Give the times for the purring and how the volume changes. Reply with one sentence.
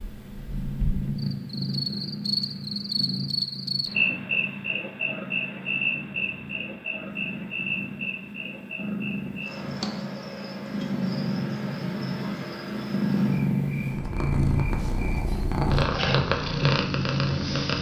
The purring can be heard from 0.0 to 17.7 s, getting quieter then louder.